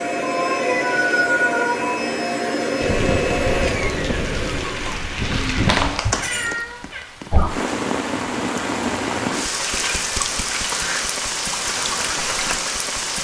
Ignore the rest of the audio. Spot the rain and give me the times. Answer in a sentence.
You can hear the rain from 2.8 to 13.1 s.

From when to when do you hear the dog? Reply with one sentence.
The dog can't be heard in this clip.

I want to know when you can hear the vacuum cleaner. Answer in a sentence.
The vacuum cleaner can be heard from 0.0 to 6.6 s.